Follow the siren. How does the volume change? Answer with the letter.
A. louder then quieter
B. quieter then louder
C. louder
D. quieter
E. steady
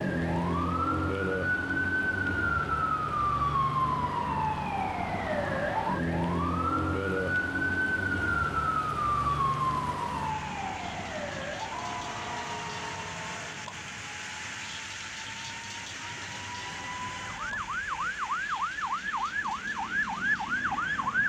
B.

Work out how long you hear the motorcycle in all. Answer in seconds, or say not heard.
not heard.